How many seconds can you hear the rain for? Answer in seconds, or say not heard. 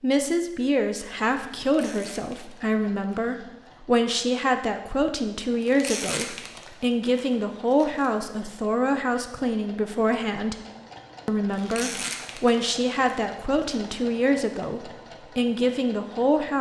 not heard.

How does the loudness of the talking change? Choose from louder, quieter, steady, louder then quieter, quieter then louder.
steady.